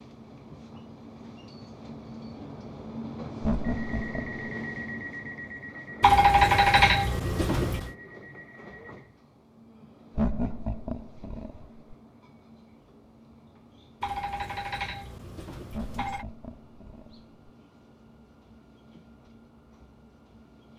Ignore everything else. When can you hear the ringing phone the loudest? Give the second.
6 s.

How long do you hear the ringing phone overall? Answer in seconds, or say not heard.
4 s.